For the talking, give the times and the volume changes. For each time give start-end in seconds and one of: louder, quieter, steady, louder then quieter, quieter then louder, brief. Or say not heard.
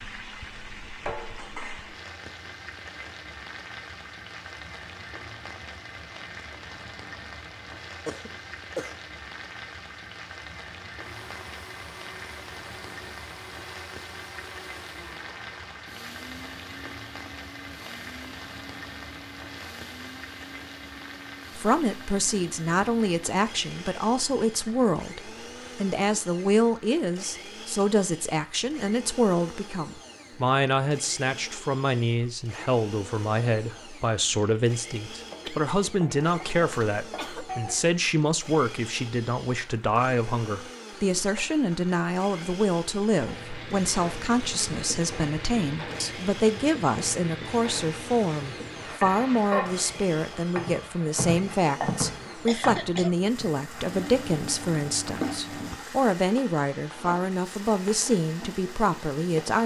21.6-59.6 steady.